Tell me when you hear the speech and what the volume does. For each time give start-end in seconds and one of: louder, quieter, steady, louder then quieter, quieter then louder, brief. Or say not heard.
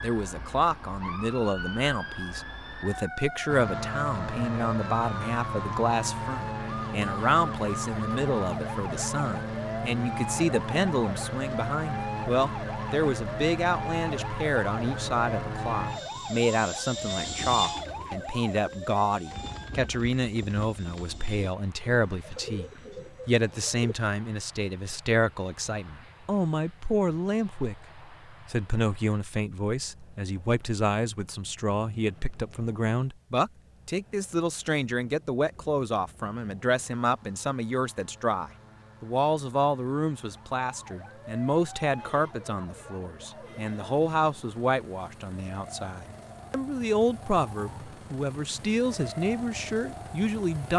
0.0-50.7 steady.